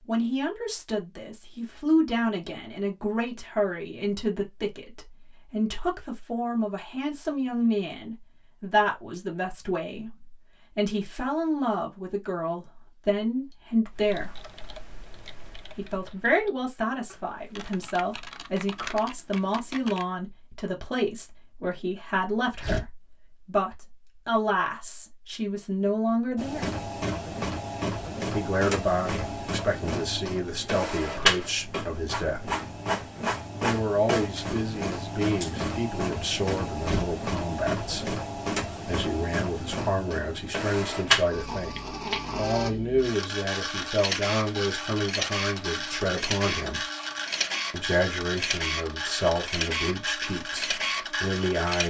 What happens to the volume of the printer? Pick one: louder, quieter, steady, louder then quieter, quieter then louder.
steady.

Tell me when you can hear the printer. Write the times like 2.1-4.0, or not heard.
26.4-51.8.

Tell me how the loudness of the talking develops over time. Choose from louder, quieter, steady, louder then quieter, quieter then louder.
steady.